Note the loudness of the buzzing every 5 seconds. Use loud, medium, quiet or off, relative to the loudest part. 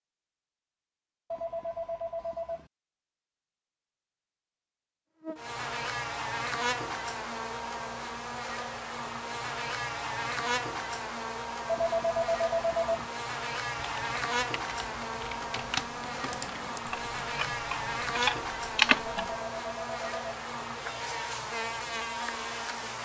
off, loud, loud, loud, loud.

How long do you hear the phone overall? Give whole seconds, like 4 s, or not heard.
4 s.